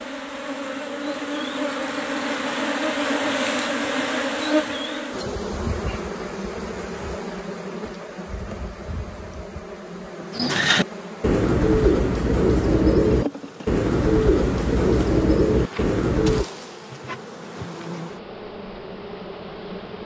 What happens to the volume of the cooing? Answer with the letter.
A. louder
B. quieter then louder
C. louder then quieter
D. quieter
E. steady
E.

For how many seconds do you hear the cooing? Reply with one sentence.
You can hear the cooing for 6 seconds altogether.